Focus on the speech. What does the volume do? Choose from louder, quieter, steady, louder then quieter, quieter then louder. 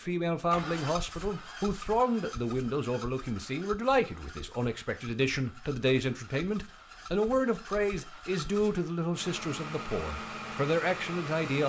steady.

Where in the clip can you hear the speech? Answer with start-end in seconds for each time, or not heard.
0.0-11.6.